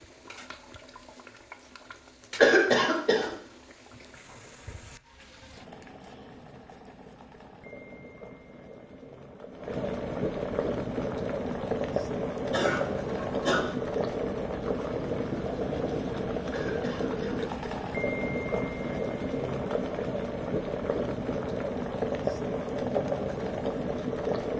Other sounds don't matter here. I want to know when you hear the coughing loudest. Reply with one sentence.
The volume of the coughing peaks at 3 seconds.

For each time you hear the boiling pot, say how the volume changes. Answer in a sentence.
You can hear the boiling pot from 0.0 to 24.5 s, getting louder.